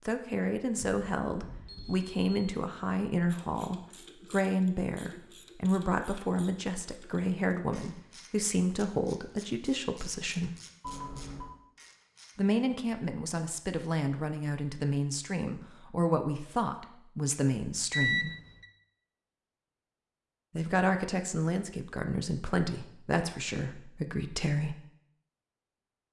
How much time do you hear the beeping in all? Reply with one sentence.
The beeping can be heard for 3 seconds in total.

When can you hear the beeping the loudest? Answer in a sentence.
The volume of the beeping peaks at 18 seconds.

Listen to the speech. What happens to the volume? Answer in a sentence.
The volume of the speech stays about the same.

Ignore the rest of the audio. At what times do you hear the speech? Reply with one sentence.
The speech can be heard from 0.1 to 10.5 s, from 12.3 to 18.3 s and from 20.6 to 24.8 s.